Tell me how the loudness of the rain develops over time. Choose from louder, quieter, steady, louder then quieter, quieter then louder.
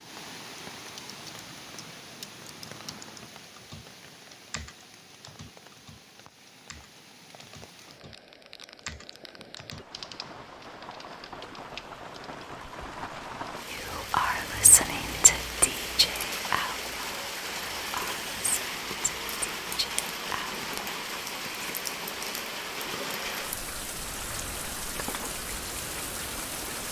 louder.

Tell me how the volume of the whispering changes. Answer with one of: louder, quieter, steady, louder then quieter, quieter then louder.
quieter.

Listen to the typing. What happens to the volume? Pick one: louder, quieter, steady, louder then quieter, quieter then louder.
quieter then louder.